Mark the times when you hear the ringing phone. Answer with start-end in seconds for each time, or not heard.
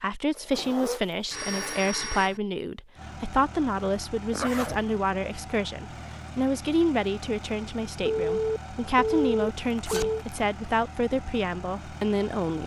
1.3-2.4, 8.1-10.2.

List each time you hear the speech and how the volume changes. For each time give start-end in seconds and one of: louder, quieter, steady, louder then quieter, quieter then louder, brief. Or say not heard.
0.0-12.6 steady.